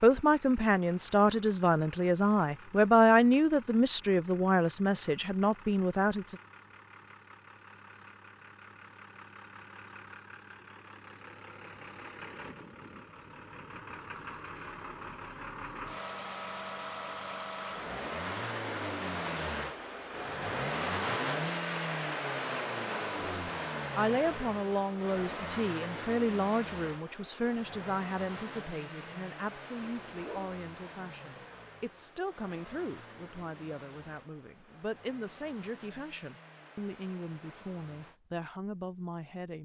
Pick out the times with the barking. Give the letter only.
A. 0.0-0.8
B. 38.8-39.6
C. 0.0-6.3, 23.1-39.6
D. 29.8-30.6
D.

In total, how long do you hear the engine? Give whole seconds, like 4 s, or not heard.
38 s.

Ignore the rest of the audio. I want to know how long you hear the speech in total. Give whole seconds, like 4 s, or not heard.
23 s.